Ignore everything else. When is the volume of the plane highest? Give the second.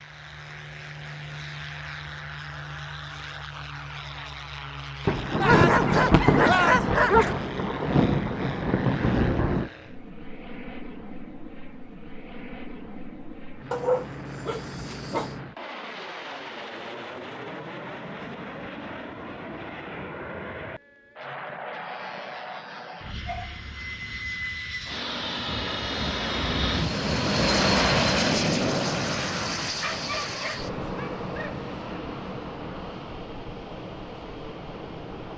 28 s.